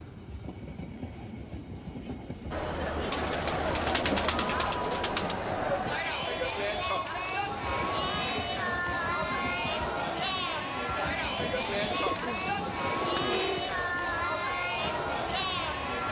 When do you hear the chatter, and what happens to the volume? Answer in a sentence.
The chatter can be heard from 2.5 to 16.0 s, at a steady volume.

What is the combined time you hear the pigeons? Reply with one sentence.
You can hear the pigeons for 4 seconds altogether.